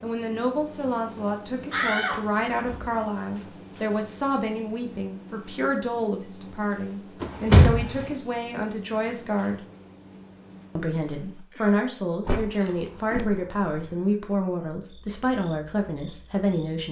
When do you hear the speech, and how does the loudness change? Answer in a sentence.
You can hear the speech from 0.0 to 9.6 s, at a steady volume; and from 10.8 to 16.8 s, at a steady volume.